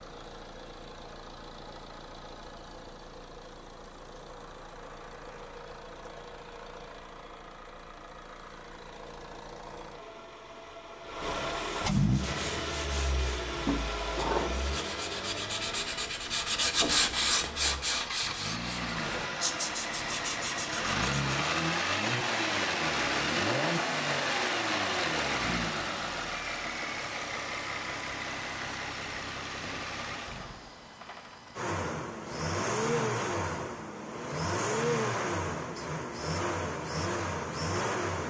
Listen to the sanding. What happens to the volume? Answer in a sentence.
The volume of the sanding goes up, then down.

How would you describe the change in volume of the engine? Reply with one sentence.
The volume of the engine goes up.